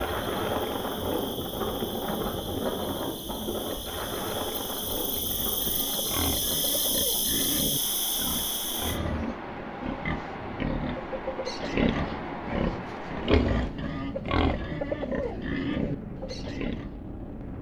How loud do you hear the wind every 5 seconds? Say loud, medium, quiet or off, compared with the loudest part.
loud, medium, medium, medium.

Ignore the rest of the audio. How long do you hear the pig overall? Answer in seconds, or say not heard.
12 s.